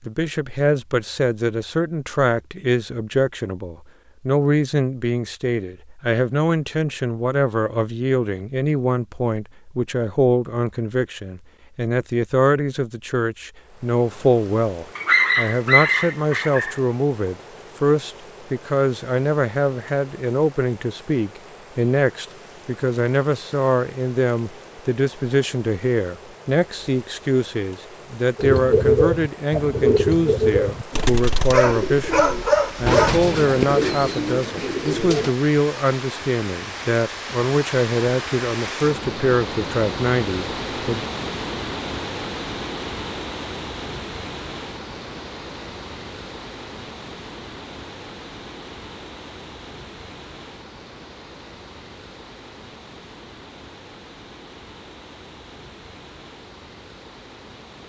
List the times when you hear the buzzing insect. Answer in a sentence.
You can't hear the buzzing insect here.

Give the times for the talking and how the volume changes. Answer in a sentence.
The talking can be heard from 0.0 to 41.0 s, at a steady volume.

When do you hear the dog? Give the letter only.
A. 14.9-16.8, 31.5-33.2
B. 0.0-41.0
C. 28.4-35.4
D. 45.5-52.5
A.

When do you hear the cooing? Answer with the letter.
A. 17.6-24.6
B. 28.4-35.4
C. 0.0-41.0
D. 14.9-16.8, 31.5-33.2
B.